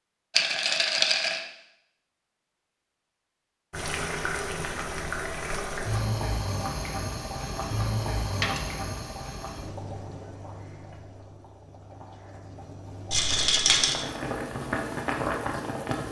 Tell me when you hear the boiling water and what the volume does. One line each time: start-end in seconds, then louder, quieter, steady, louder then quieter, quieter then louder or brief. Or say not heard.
3.7-16.0 quieter then louder.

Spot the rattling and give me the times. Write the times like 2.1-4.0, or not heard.
0.3-1.4, 8.3-8.8, 13.1-14.1.